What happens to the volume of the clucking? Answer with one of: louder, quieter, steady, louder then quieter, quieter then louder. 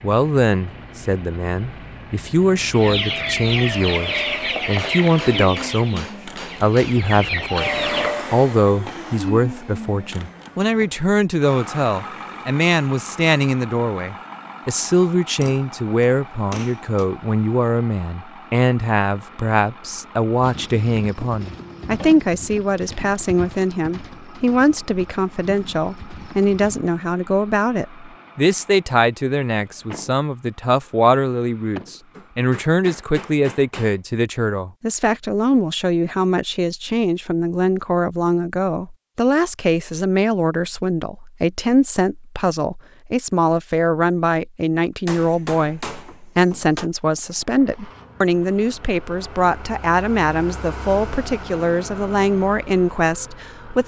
quieter then louder.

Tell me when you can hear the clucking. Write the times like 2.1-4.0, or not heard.
2.7-8.2.